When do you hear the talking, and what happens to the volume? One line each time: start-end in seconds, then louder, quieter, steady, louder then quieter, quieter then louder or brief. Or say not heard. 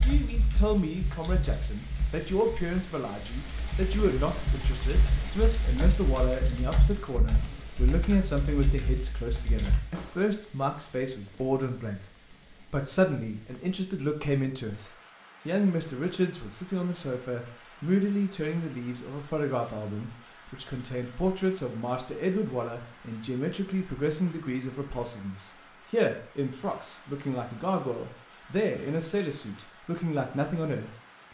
0.0-30.9 steady.